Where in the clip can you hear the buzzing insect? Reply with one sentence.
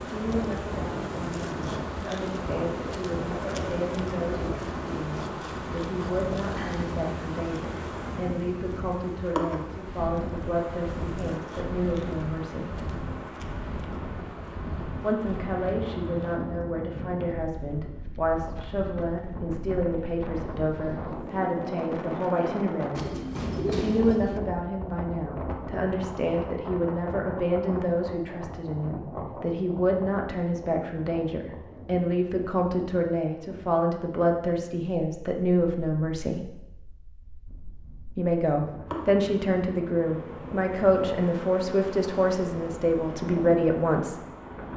The buzzing insect can be heard from 0.0 to 16.4 s and from 38.9 to 44.7 s.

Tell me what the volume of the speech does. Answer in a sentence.
The loudness of the speech goes up.